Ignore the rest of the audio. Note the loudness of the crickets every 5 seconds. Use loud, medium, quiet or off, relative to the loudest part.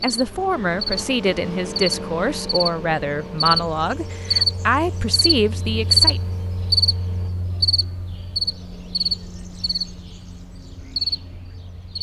loud, loud, medium.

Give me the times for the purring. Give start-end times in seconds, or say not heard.
not heard.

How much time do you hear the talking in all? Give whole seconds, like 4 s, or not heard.
6 s.